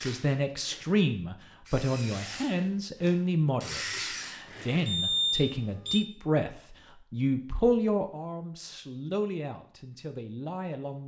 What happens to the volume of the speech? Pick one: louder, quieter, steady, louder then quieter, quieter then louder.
quieter.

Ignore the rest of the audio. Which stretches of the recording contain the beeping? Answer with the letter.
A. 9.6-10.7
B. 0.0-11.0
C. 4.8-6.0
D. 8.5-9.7
C.